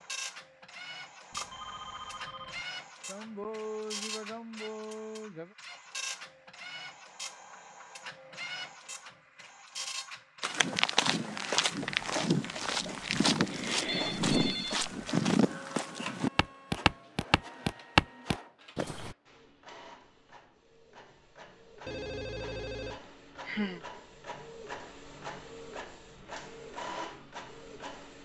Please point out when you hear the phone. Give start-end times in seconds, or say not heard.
1.3-2.6, 13.8-14.8, 21.9-23.0.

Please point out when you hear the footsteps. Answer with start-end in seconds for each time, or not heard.
10.4-19.1.